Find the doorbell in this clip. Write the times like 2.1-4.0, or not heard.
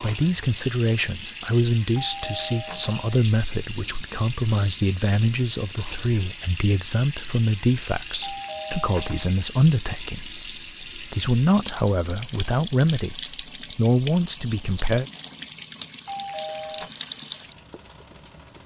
1.9-3.1, 8.2-9.3, 16.1-16.9.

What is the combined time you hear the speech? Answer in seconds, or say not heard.
15 s.